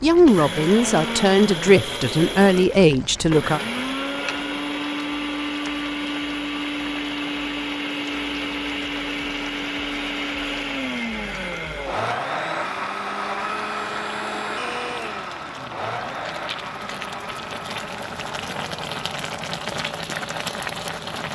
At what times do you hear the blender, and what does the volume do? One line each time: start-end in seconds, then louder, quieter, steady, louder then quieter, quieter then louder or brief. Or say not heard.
0.0-21.3 quieter.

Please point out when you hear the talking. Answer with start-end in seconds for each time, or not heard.
0.0-3.6.